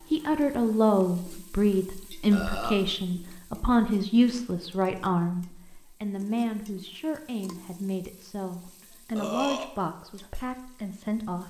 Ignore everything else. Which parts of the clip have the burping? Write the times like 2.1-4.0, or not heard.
2.3-2.8, 9.2-9.7.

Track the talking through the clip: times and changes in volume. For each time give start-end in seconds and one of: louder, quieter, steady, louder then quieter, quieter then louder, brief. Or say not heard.
0.1-11.4 quieter.